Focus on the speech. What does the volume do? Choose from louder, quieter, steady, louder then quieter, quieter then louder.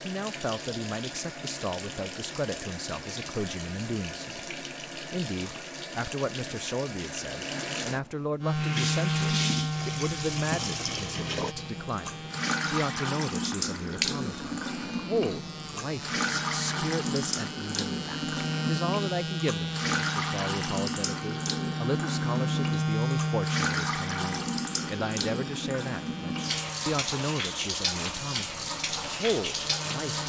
steady.